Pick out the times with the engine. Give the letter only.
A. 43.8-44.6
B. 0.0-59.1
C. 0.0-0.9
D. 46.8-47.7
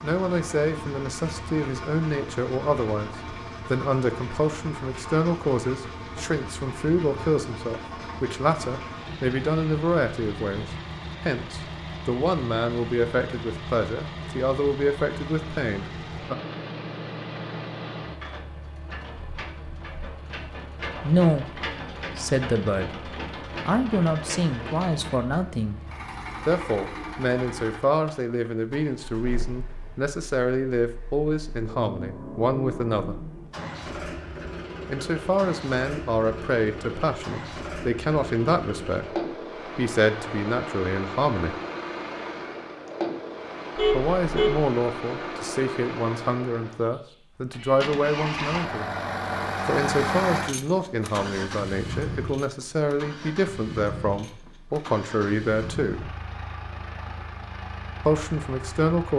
B.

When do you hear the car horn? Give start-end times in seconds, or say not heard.
43.8-44.6.